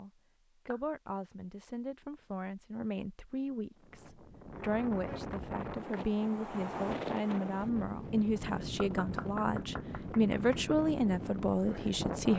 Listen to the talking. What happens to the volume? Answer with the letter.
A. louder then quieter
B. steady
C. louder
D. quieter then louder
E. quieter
C.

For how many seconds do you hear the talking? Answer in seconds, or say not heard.
12 s.